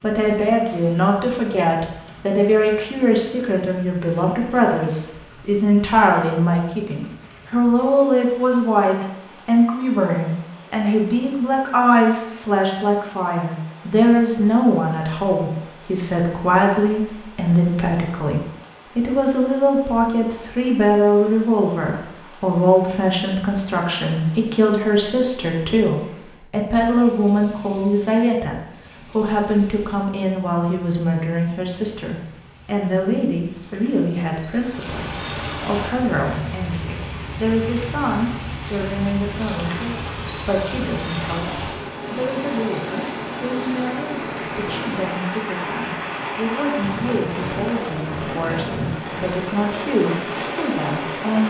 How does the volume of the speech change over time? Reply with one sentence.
The loudness of the speech goes down.